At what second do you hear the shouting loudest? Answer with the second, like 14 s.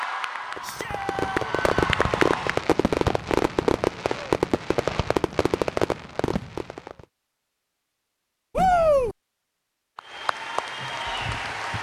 9 s.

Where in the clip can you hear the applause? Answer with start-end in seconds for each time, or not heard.
0.0-2.6, 9.9-11.7.